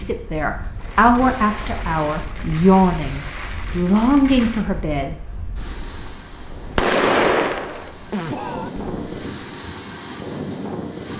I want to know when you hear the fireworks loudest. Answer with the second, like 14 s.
7 s.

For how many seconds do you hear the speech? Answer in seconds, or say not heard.
5 s.